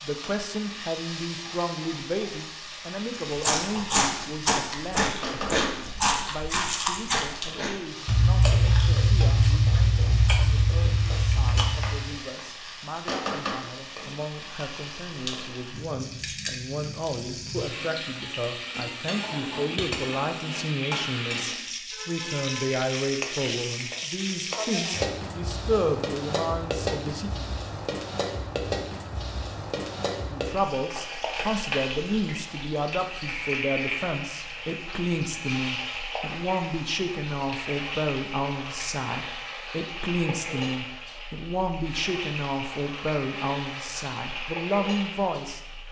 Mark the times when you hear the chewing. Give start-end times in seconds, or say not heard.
3.4-12.2.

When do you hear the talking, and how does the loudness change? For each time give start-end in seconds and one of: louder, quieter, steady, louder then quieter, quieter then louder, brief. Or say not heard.
0.0-27.4 quieter then louder
30.2-45.6 steady.